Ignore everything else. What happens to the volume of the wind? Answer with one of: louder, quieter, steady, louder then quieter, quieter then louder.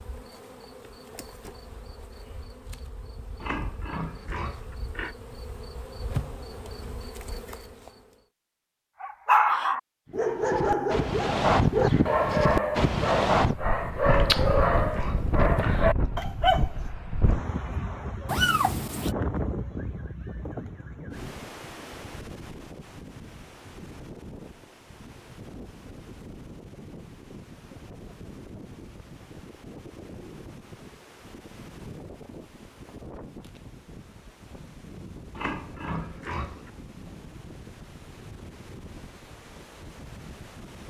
quieter.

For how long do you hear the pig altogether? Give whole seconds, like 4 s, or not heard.
5 s.